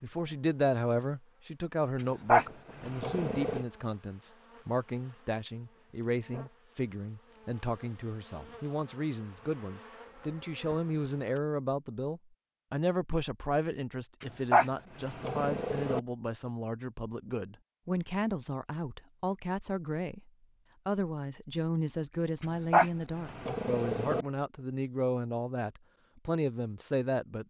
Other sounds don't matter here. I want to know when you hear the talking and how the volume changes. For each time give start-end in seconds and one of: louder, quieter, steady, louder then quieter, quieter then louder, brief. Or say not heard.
0.0-27.4 steady.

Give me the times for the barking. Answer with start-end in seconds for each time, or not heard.
2.2-3.6, 14.5-16.0, 22.7-24.2.